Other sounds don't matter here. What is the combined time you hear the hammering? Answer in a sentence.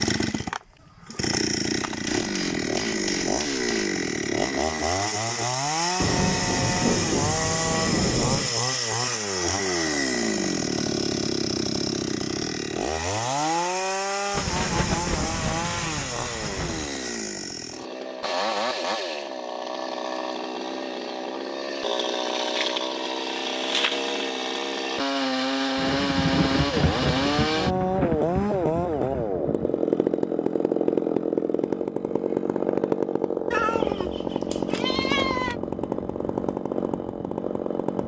The hammering can be heard for 2 seconds in total.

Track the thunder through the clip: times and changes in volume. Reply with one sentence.
You can hear the thunder briefly from 6.0 to 8.6 s; briefly from 14.3 to 16.9 s; and from 25.8 to 29.8 s, getting quieter.